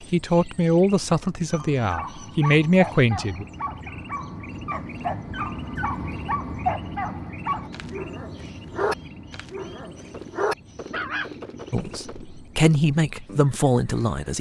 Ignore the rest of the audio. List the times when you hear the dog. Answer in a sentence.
The dog can be heard from 1.4 to 11.4 s.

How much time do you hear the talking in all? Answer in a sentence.
The talking can be heard for 6 seconds in total.